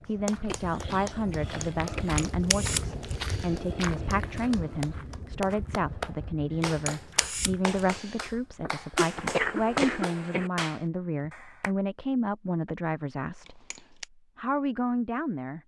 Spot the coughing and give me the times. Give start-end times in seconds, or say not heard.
0.5-2.2, 8.9-10.5.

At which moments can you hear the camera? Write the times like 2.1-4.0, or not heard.
2.1-3.5, 6.6-8.2, 13.4-14.1.